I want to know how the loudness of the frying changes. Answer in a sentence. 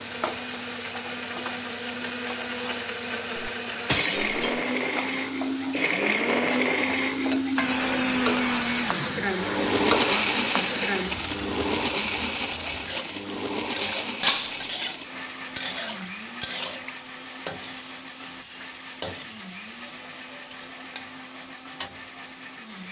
The loudness of the frying goes up, then down.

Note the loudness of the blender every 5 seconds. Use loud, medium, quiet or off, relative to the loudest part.
medium, loud, medium, quiet, quiet.